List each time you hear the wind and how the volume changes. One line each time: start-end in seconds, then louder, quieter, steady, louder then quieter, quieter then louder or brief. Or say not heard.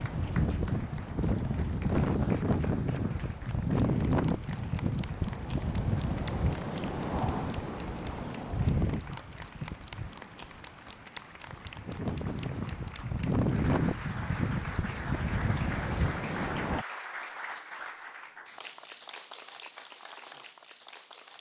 0.0-16.9 quieter then louder.